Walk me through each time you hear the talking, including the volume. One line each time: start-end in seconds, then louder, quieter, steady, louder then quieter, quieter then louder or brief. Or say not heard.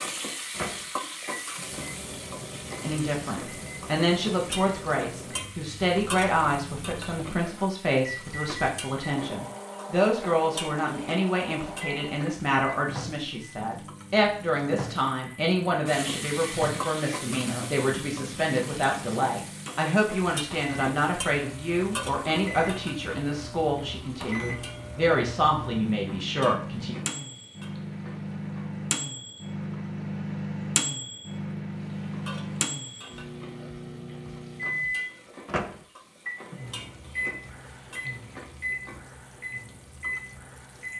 2.8-26.9 steady.